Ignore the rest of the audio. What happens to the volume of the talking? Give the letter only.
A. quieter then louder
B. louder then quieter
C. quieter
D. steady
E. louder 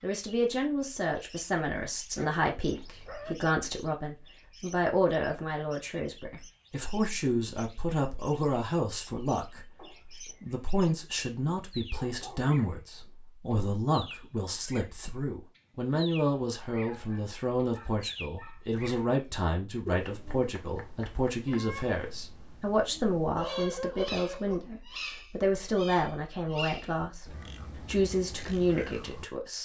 D.